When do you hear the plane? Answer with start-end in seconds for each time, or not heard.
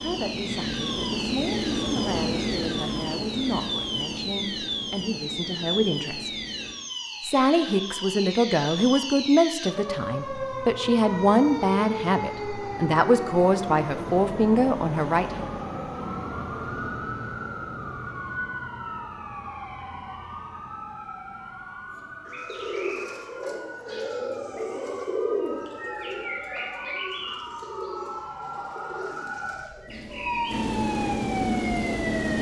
0.0-6.8, 29.9-32.3.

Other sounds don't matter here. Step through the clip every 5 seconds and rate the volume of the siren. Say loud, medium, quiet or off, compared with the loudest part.
loud, loud, loud, loud, medium, medium, loud.